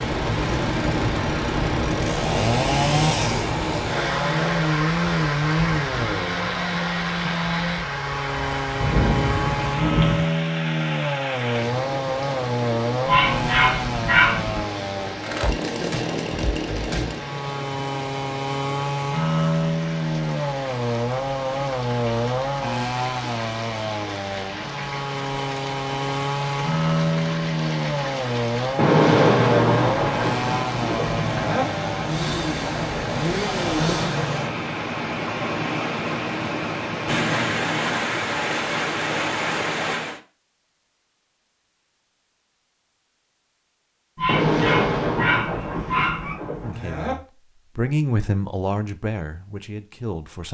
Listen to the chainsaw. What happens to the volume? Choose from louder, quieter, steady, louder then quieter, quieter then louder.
steady.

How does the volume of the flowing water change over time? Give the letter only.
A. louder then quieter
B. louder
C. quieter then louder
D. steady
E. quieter
C.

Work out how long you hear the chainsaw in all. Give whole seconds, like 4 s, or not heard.
34 s.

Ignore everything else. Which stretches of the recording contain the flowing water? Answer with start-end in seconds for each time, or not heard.
0.0-40.2.